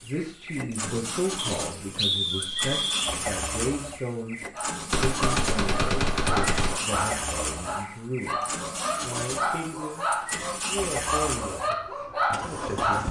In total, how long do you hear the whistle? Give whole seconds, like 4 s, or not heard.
2 s.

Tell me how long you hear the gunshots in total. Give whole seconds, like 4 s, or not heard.
2 s.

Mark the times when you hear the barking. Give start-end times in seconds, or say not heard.
4.5-13.0.